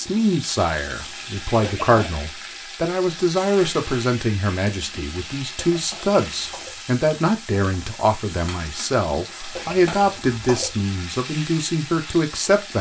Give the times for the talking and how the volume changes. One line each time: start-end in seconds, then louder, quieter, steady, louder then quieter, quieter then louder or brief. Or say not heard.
0.0-12.7 steady.